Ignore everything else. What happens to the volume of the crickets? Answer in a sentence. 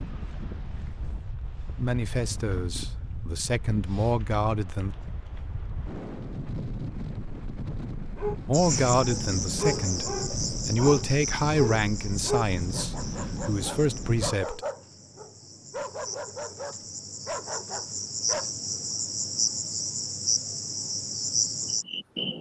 The loudness of the crickets goes down, then up.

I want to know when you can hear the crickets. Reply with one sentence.
You can hear the crickets from 8.5 to 22.3 s.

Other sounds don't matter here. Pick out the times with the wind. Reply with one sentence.
You can hear the wind from 0.0 to 14.3 s.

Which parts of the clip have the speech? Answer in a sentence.
The speech can be heard from 1.8 to 5.0 s and from 8.4 to 14.6 s.